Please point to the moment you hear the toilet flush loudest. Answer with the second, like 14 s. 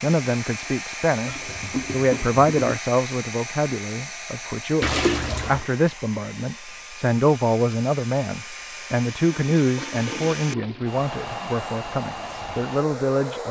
5 s.